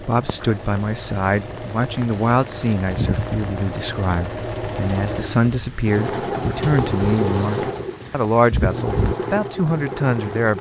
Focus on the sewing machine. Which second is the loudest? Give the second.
7 s.